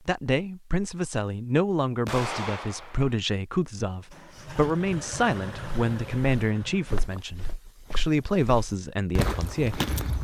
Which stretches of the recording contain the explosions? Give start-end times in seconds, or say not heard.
2.0-3.1.